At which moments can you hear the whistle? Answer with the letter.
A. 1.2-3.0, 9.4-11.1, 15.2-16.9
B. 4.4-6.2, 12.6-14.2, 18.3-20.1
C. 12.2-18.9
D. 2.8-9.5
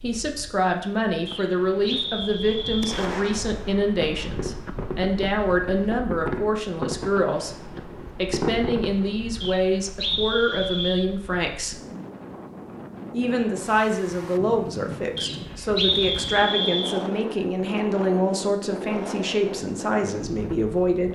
A.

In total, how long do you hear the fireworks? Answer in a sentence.
The fireworks can be heard for 7 seconds in total.